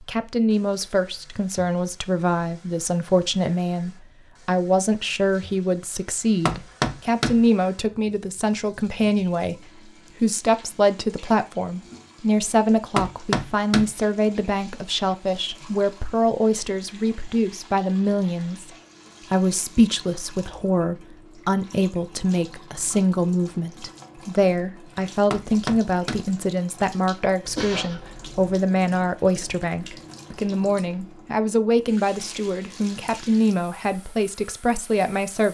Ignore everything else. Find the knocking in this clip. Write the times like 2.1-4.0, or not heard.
6.5-7.5, 12.9-13.9, 25.3-26.3.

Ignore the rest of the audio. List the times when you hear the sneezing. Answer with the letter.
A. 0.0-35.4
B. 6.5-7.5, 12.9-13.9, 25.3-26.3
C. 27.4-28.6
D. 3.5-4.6
C.